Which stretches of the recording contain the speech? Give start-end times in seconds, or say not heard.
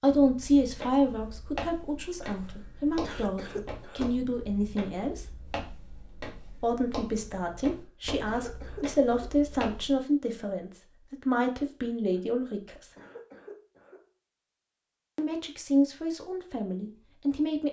0.0-5.2, 6.6-12.9, 15.2-17.6.